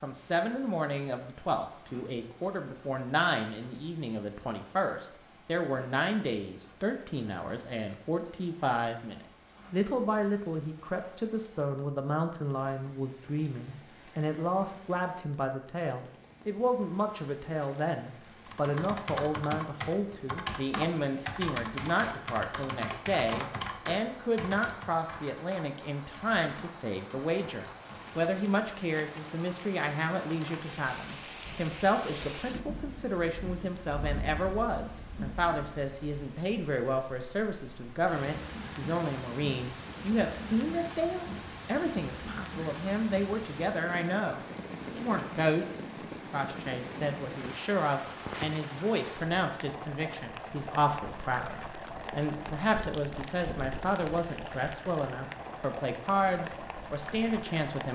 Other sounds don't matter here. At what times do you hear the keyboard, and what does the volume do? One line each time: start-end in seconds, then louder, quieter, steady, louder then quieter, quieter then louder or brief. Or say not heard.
18.4-28.1 quieter.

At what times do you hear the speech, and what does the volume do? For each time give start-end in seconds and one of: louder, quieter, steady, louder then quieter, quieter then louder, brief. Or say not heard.
0.0-57.8 steady.